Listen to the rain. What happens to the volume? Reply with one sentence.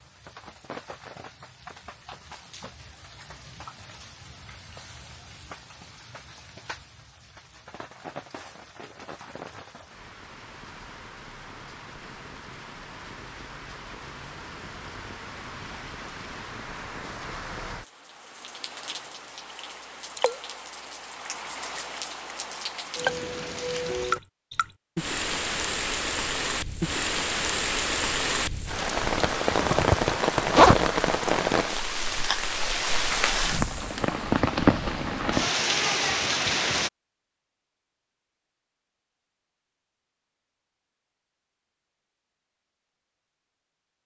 The loudness of the rain goes up.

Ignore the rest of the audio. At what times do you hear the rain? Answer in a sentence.
You can hear the rain from 0.0 to 36.9 s.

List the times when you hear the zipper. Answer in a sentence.
The zipper can be heard from 29.0 to 30.9 s.